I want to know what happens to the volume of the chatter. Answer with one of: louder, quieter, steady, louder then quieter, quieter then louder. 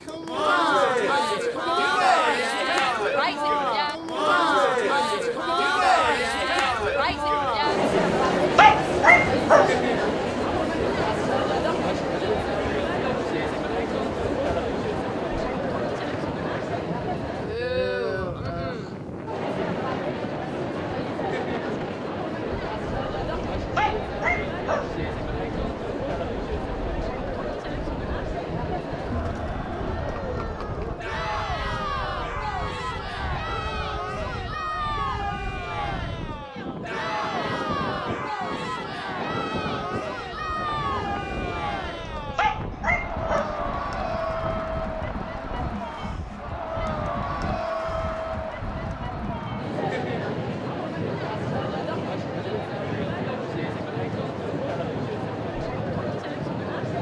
quieter.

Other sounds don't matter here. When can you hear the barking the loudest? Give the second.
9 s.